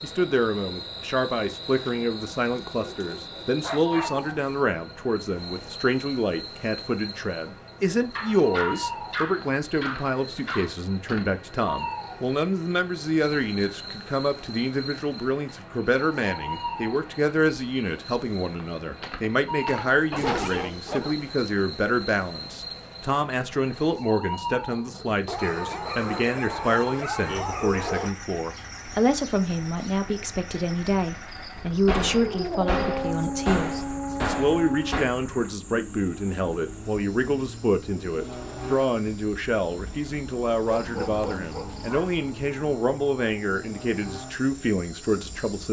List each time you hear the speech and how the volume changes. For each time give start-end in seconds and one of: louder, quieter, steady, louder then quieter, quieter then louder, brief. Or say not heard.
0.0-45.6 steady.